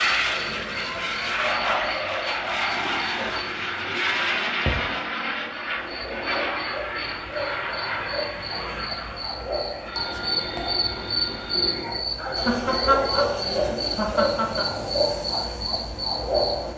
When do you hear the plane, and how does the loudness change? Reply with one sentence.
You can hear the plane from 0.0 to 16.7 s, getting quieter.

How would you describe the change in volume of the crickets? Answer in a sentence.
The volume of the crickets goes up.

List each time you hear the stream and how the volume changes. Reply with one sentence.
You can't hear the stream here.